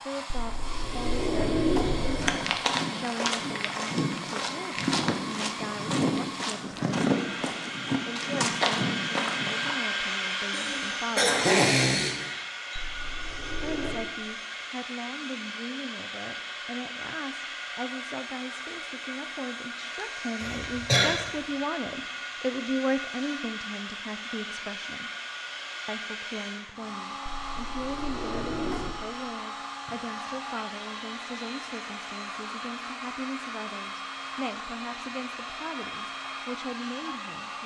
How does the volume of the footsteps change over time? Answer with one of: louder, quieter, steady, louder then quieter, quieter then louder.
steady.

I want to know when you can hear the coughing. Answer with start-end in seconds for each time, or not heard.
10.5-12.4, 20.4-21.2.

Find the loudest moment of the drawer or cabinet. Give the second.
2 s.